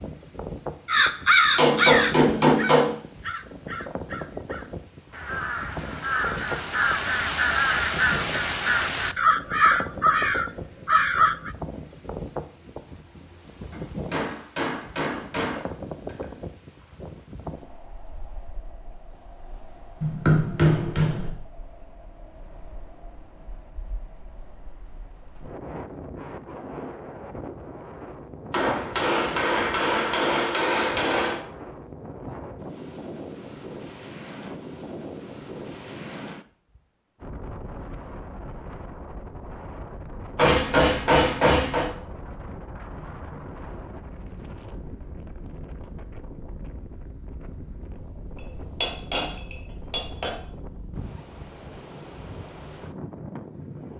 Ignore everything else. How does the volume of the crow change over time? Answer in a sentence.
The volume of the crow goes down, then up.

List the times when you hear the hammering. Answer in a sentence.
The hammering can be heard from 1.6 to 3.0 s, from 13.7 to 16.2 s, from 20.0 to 21.3 s, from 28.5 to 31.4 s, from 40.4 to 41.9 s and from 48.8 to 50.4 s.